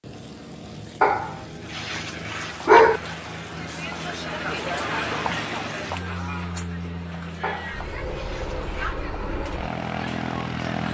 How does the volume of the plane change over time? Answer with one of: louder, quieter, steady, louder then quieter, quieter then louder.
louder.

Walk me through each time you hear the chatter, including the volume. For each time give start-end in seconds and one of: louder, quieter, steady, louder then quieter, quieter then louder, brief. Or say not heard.
1.6-10.8 louder then quieter.